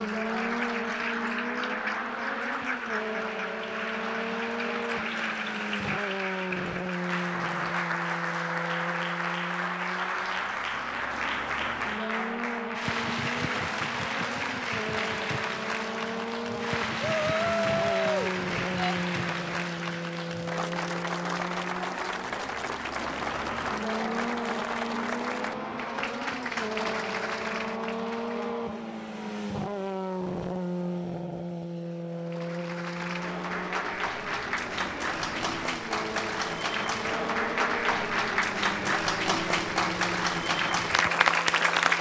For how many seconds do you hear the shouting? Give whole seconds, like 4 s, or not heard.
2 s.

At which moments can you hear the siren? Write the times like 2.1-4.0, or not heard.
not heard.